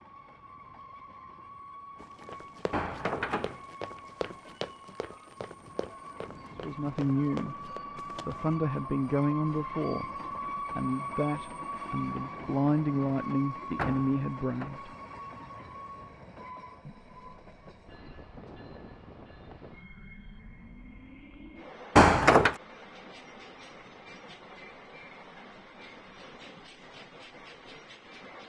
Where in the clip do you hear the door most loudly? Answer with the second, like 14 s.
22 s.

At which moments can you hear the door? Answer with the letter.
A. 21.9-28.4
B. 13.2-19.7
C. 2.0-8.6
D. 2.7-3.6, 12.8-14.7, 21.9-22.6
D.